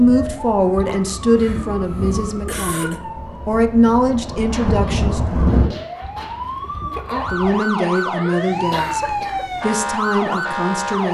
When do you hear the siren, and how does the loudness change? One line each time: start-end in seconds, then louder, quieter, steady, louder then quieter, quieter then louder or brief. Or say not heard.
0.0-11.0 louder.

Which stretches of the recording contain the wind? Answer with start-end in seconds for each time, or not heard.
0.0-5.7.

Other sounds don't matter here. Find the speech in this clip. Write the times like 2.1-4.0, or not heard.
0.0-5.2, 7.3-11.0.